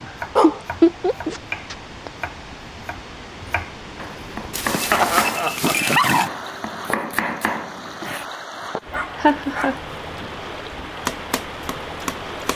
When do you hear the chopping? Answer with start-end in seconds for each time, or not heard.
0.0-8.2, 11.1-12.5.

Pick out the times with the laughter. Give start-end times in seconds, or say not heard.
0.4-2.1, 4.9-6.0, 9.2-9.8.